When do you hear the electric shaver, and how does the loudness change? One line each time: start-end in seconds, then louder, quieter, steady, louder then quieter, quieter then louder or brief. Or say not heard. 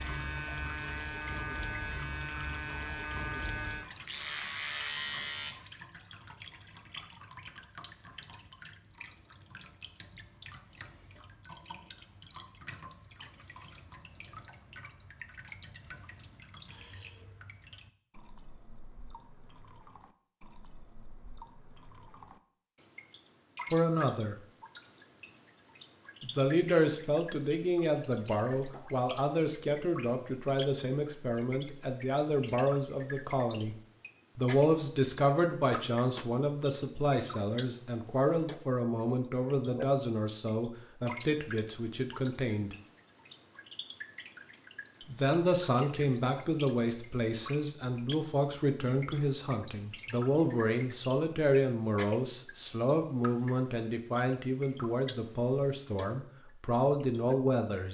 0.0-5.5 steady.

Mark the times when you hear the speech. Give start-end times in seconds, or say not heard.
23.7-24.4, 26.2-33.8, 34.4-42.8, 45.0-57.8.